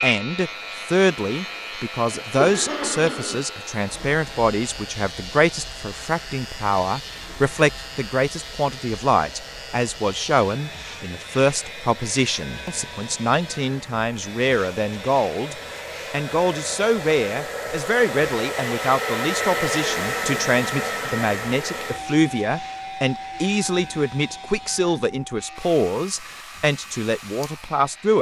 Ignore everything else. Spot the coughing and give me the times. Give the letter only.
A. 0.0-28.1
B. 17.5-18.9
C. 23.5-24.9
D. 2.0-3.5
D.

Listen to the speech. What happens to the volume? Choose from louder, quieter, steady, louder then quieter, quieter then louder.
steady.